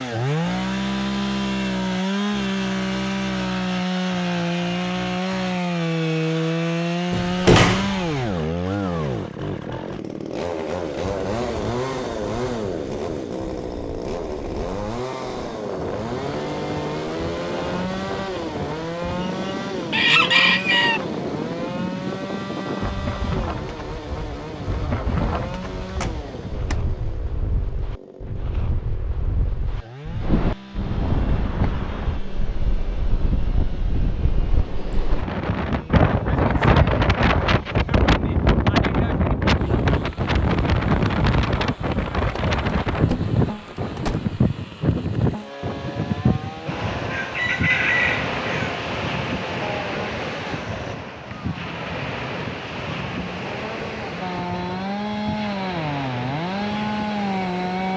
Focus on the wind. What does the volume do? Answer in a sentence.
The loudness of the wind goes up, then down.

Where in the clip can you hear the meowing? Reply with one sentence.
You can't hear the meowing here.